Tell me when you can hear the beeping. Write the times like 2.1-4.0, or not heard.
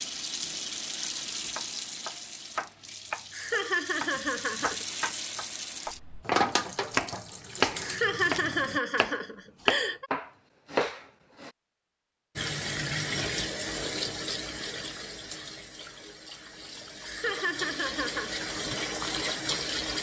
not heard.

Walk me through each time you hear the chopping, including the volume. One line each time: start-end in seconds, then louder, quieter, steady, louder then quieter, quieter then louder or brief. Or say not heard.
1.6-11.5 louder.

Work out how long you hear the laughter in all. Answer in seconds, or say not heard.
5 s.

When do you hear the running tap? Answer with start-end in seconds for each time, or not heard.
0.0-8.8, 12.3-19.9.